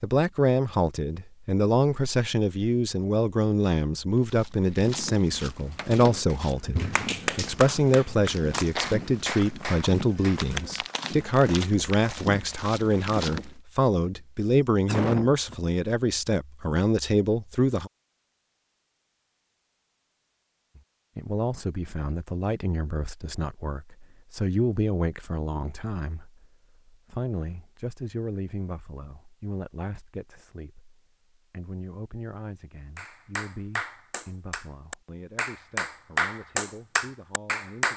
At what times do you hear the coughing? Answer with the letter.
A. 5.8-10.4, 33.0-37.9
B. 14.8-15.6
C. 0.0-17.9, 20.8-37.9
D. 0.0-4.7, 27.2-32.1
B.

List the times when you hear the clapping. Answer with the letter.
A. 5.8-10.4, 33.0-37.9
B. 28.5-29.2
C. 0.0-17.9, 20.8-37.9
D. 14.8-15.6
A.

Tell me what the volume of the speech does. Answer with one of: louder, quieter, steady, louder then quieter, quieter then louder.
quieter.